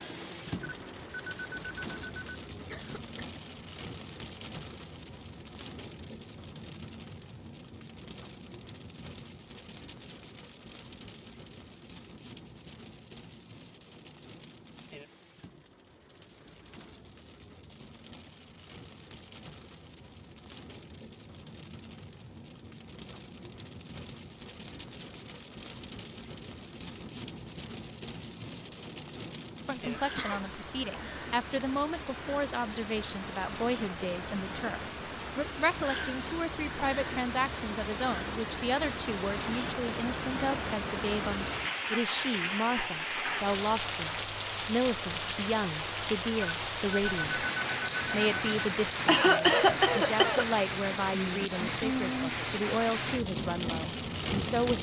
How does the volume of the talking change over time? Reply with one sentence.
The volume of the talking stays about the same.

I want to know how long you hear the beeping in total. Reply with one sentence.
The beeping can be heard for 4 seconds in total.